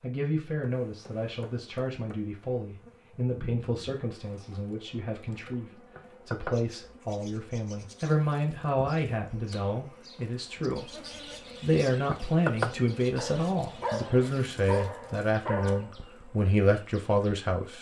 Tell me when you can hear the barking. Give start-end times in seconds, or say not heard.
13.2-15.9.